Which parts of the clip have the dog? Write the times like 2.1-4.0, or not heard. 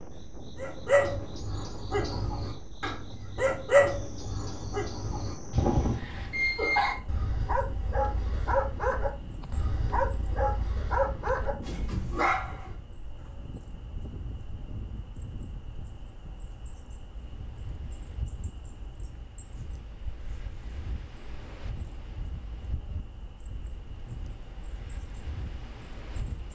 0.6-12.7.